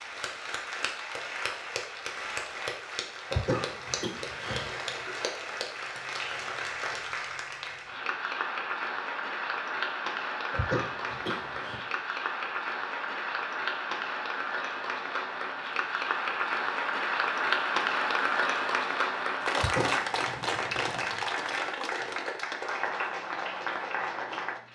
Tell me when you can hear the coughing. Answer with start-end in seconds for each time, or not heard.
3.3-5.2, 10.5-11.8, 19.6-20.1.